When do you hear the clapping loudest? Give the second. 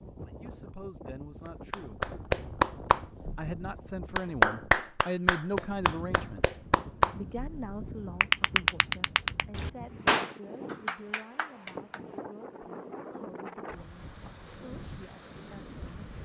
5 s.